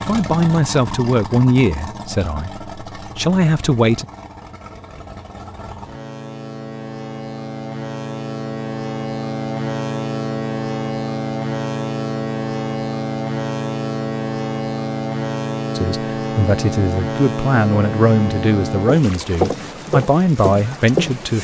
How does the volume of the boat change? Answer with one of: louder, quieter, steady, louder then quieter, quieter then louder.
louder.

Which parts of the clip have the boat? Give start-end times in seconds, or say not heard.
0.0-21.3.